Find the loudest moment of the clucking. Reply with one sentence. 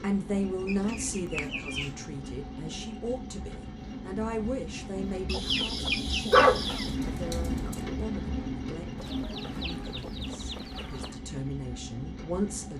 The loudest moment of the clucking is at 6 seconds.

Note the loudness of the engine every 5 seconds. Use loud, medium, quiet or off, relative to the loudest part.
medium, loud, medium.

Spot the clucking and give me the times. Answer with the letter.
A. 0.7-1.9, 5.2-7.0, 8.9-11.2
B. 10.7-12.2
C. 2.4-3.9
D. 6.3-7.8
A.